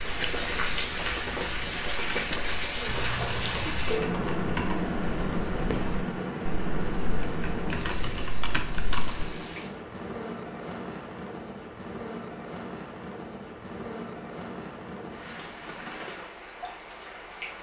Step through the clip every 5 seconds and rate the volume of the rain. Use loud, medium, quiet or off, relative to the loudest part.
loud, loud, medium, medium.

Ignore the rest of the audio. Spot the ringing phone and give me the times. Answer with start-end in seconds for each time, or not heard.
2.9-4.2.